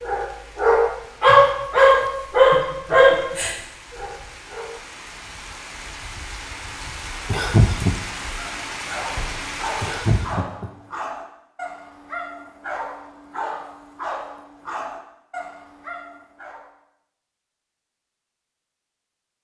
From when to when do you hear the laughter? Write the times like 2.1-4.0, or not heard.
7.3-8.0, 9.8-10.7.